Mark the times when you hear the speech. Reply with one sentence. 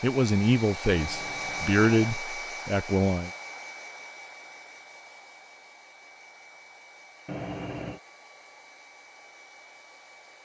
You can hear the speech from 0.0 to 3.3 s.